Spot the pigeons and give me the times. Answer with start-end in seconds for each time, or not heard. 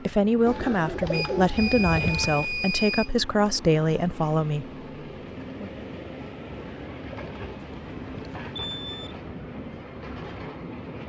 0.5-2.5, 6.5-8.5.